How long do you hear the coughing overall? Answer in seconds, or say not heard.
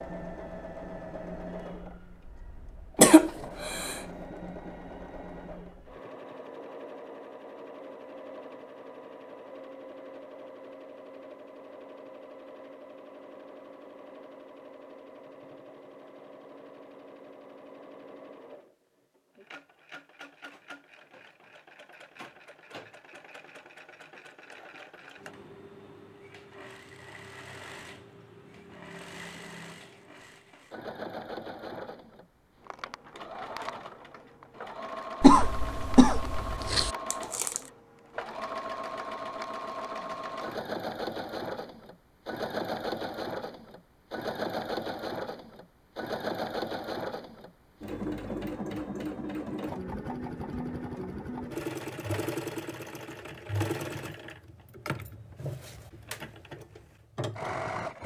3 s.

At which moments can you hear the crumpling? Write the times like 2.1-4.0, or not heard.
37.1-37.7.